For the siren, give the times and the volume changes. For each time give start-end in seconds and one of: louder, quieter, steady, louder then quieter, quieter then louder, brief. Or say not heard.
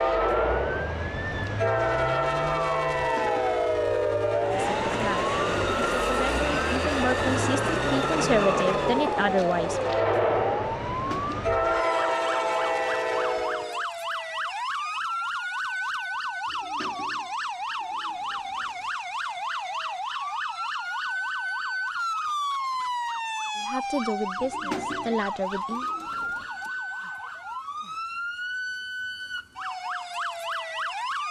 0.0-31.2 steady.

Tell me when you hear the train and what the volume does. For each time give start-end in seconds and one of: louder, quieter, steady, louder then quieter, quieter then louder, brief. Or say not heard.
0.0-13.8 steady.